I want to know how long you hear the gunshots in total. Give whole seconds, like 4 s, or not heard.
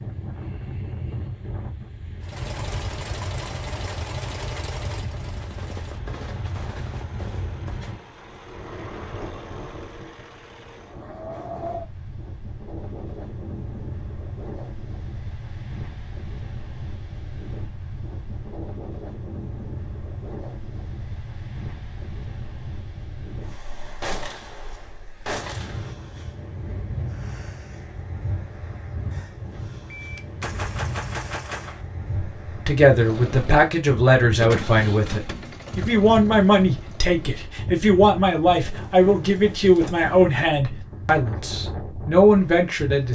7 s.